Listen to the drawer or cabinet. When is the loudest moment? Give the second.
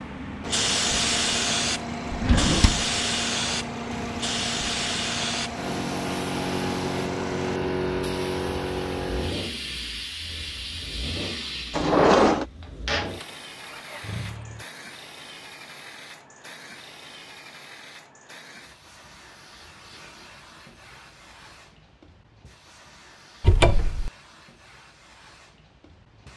12 s.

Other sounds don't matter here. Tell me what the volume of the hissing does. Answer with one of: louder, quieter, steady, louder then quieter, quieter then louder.
quieter.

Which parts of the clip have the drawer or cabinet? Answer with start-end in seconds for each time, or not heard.
2.1-2.9, 11.7-12.4, 23.4-24.1.